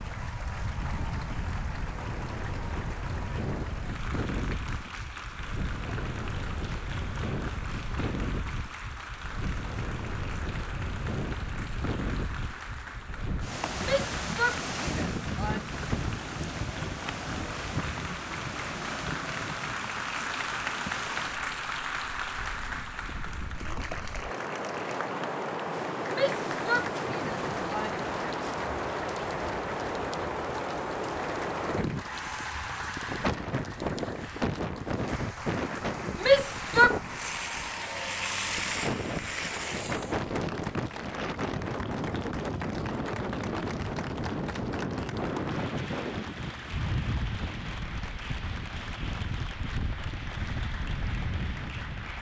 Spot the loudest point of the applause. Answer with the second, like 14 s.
21 s.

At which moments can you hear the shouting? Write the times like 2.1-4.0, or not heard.
13.8-15.6, 26.1-28.1, 36.2-37.0.